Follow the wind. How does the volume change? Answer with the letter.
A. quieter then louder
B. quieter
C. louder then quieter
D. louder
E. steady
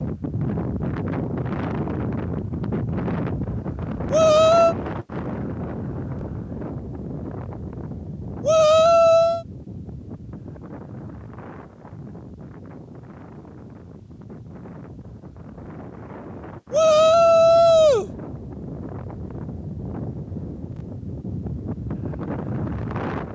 A.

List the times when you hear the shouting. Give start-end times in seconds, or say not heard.
4.1-4.8, 8.4-9.4, 16.7-18.1.